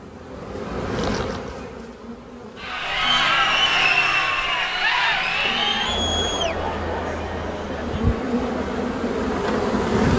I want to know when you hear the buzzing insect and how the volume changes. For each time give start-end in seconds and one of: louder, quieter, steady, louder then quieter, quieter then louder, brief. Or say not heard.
0.0-3.0 brief
5.2-10.1 louder.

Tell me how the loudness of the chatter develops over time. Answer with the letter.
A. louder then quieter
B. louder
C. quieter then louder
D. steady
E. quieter
E.